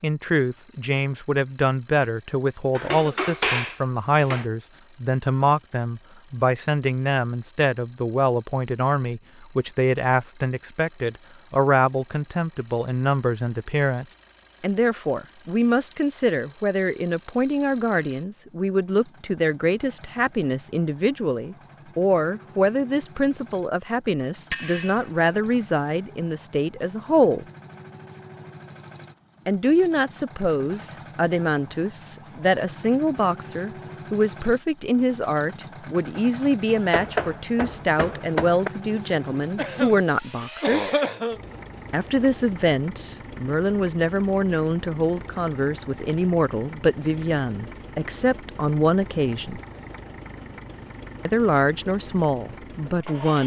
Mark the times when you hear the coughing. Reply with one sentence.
The coughing can be heard from 2.9 to 3.3 s and from 39.5 to 41.5 s.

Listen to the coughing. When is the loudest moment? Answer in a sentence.
The volume of the coughing peaks at 41 seconds.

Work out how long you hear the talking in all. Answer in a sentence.
The talking can be heard for 49 seconds in total.